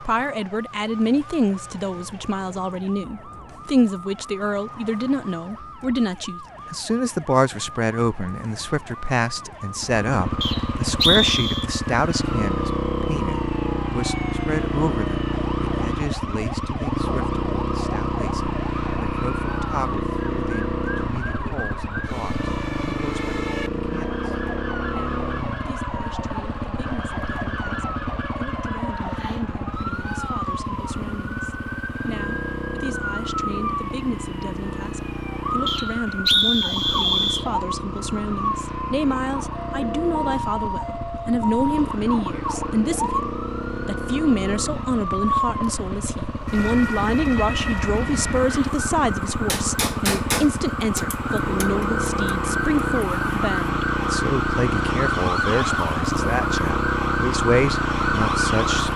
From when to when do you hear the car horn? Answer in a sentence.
The car horn can't be heard in this clip.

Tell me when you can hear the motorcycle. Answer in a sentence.
You can hear the motorcycle from 9.8 to 58.9 s.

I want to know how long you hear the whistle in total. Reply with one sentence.
You can hear the whistle for 3 seconds altogether.